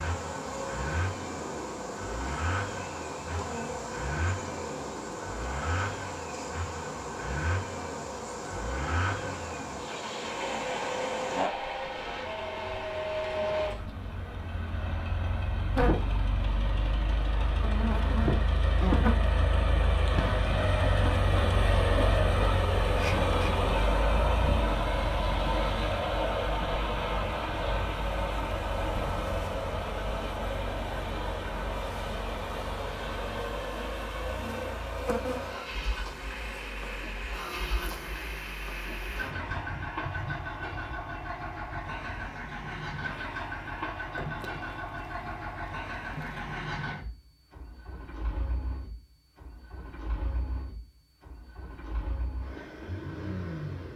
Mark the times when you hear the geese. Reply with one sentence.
The geese can't be heard in this clip.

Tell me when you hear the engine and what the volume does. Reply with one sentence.
You can hear the engine from 0.0 to 53.9 s, getting louder then quieter.